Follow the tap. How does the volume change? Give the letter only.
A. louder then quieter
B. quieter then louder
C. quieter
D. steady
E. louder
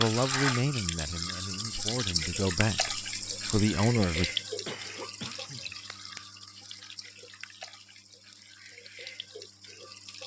C.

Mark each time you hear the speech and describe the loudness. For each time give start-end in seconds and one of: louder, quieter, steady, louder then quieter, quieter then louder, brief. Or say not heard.
0.0-4.3 quieter then louder.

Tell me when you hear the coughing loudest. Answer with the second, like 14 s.
5 s.